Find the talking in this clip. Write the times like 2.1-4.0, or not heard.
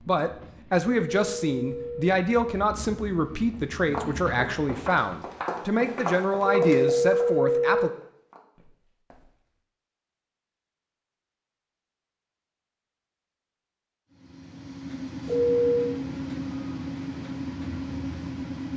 0.1-7.9.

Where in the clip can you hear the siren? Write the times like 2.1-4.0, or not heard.
not heard.